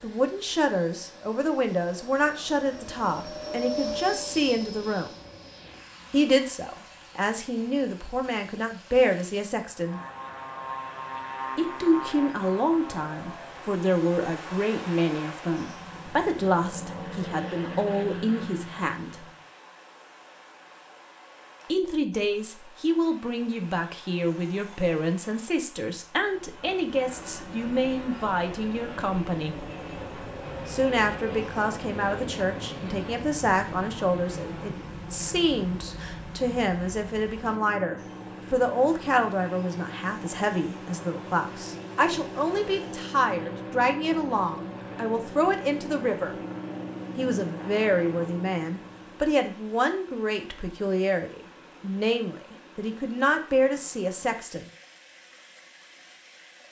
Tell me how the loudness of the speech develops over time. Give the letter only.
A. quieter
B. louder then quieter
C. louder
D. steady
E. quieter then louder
D.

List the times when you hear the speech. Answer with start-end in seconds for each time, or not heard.
0.0-5.2, 6.1-10.0, 11.6-19.2, 21.6-29.7, 30.6-46.4, 47.1-54.6.